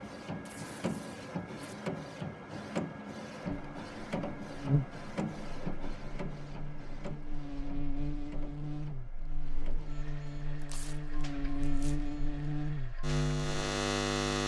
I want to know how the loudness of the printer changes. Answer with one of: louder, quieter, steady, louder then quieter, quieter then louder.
quieter.